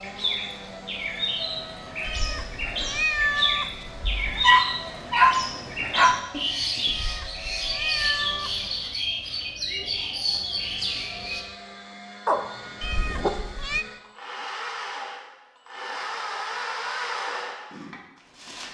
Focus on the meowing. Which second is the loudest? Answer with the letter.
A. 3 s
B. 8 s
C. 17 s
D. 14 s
A.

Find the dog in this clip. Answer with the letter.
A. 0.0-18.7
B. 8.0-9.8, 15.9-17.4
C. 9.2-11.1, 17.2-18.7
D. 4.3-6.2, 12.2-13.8
D.